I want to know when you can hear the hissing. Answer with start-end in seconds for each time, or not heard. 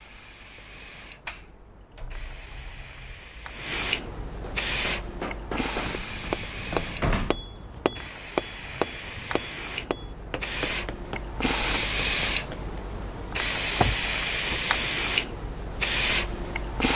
0.0-16.9.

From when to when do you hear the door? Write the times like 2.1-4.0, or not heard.
1.2-3.5, 5.8-7.5, 13.8-14.7.